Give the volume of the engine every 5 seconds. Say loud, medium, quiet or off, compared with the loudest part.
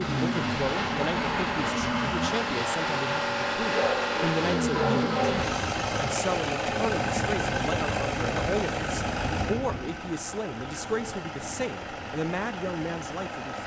loud, loud, medium.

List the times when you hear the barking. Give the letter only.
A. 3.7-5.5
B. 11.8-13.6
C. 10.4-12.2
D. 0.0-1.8
A.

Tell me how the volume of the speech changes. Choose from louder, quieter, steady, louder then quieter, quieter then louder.
steady.